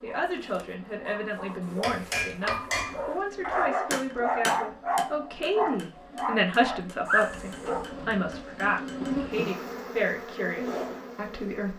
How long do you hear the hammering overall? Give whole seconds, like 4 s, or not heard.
7 s.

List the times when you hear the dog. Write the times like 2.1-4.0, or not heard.
0.0-7.8.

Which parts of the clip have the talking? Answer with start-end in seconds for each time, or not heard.
0.0-11.7.